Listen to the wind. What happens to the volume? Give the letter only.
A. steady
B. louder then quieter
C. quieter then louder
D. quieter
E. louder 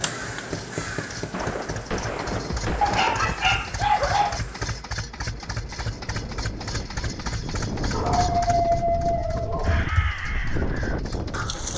E.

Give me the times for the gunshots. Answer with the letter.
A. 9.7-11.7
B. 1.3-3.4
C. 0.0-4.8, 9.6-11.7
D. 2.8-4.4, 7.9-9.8
B.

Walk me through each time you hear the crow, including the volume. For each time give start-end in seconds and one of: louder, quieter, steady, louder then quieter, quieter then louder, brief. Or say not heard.
0.0-4.8 quieter
9.6-11.7 brief.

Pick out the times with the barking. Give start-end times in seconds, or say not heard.
2.8-4.4, 7.9-9.8.